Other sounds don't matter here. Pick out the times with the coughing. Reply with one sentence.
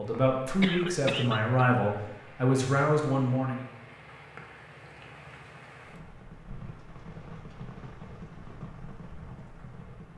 You can hear the coughing from 0.6 to 1.6 s.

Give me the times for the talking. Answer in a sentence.
The talking can be heard from 0.0 to 3.6 s.